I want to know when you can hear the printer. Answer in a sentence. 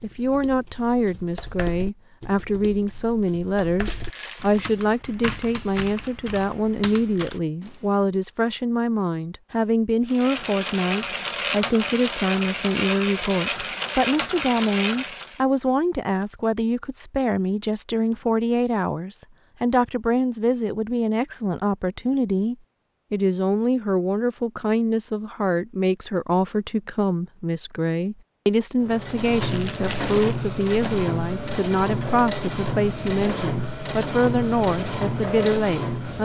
You can hear the printer from 10.1 to 15.4 s and from 28.8 to 36.1 s.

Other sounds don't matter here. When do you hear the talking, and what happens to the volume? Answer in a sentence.
You can hear the talking from 0.0 to 36.1 s, at a steady volume.